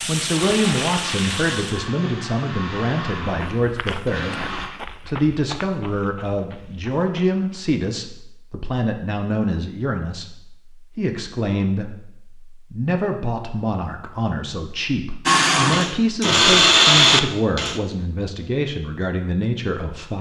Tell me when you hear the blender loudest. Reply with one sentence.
The loudest moment of the blender is at 17 seconds.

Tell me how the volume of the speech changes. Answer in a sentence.
The volume of the speech stays about the same.